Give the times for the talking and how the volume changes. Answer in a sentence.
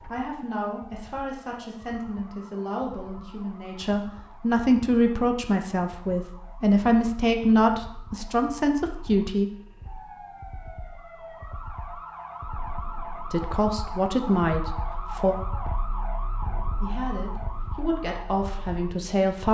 The talking can be heard from 0.0 to 9.4 s, getting louder; briefly from 13.3 to 15.3 s; and briefly from 16.8 to 19.4 s.